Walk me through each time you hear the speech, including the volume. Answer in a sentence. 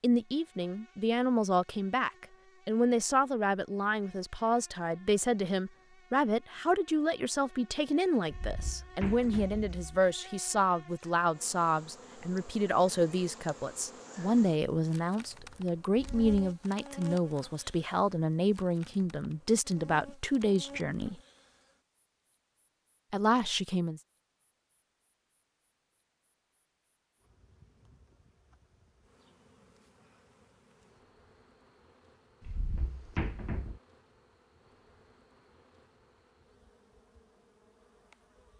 The speech can be heard from 0.0 to 21.1 s, at a steady volume; and briefly from 23.1 to 24.0 s.